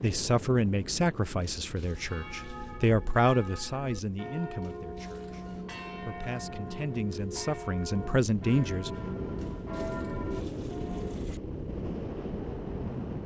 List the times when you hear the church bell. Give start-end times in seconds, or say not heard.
1.9-11.2.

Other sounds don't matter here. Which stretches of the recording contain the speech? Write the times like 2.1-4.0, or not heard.
0.0-8.9.